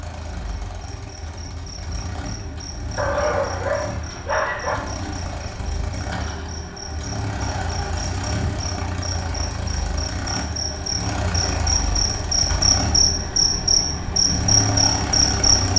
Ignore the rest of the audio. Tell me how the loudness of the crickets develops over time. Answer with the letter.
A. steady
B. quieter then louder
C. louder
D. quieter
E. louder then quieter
C.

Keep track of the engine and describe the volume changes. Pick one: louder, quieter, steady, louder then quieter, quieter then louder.
louder.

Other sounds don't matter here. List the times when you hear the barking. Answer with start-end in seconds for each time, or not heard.
3.0-4.8.